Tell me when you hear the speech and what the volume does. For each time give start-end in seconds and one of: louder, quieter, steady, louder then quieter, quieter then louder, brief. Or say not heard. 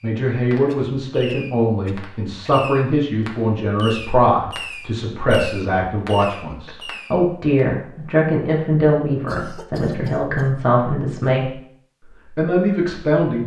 0.0-13.4 steady.